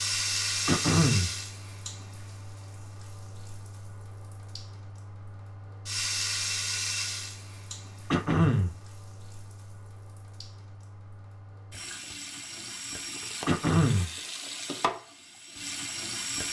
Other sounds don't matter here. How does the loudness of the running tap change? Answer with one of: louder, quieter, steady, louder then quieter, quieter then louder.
quieter then louder.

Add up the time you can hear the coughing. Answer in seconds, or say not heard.
2 s.